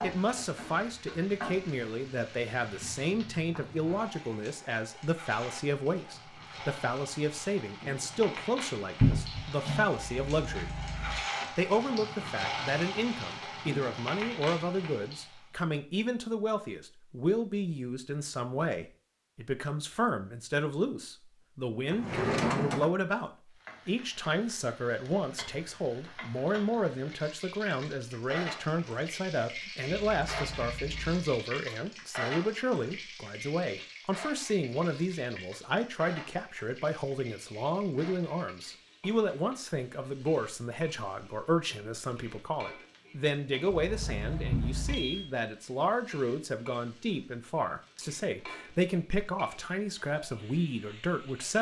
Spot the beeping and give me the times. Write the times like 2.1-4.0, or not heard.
9.9-11.2, 29.9-31.2, 43.7-45.3.